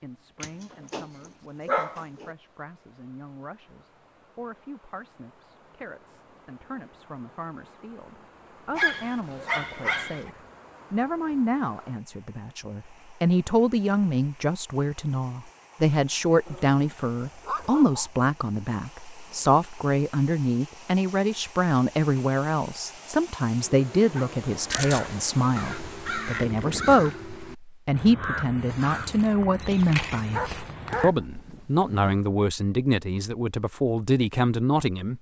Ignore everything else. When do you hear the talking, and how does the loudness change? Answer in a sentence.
The talking can be heard from 0.0 to 35.1 s, getting louder.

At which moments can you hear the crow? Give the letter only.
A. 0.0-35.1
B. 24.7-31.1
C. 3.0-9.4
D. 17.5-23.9
B.